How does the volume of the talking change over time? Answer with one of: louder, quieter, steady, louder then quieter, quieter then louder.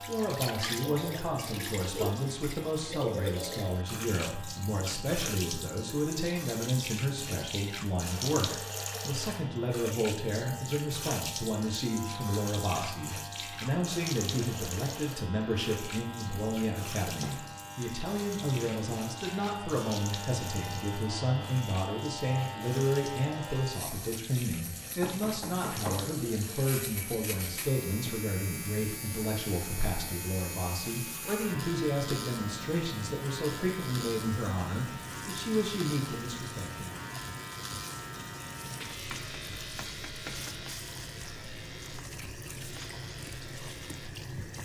steady.